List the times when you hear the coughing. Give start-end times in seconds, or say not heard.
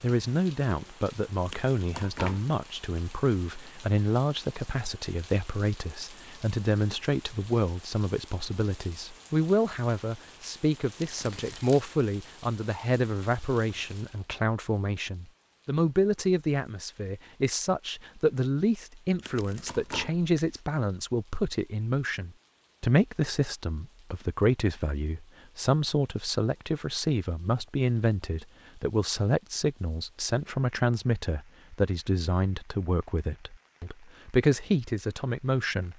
not heard.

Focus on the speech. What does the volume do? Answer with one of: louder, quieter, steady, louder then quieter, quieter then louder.
steady.